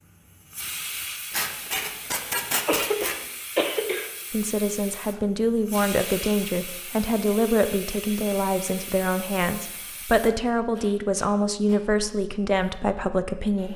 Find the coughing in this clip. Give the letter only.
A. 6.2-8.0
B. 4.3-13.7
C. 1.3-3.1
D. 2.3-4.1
D.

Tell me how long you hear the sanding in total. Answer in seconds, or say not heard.
2 s.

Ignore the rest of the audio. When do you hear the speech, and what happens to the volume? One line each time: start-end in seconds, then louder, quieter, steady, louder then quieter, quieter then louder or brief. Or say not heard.
4.3-13.7 steady.